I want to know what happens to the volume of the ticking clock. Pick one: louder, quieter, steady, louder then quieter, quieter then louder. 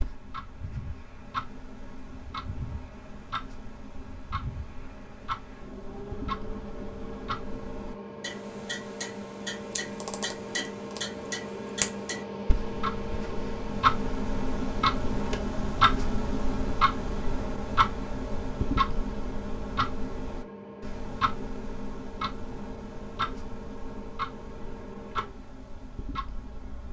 louder then quieter.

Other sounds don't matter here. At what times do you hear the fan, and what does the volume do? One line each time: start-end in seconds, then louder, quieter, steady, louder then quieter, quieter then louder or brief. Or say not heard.
0.0-26.8 louder then quieter.